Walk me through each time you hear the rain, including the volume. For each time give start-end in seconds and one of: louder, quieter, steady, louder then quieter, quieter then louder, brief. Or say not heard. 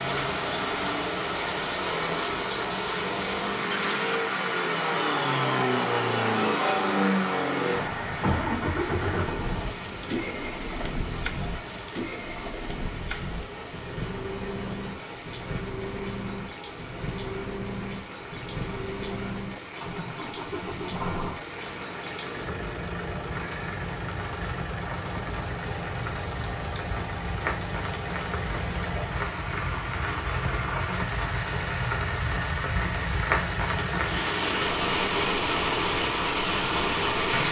0.0-37.4 quieter then louder.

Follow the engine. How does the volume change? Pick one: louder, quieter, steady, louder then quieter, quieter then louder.
quieter.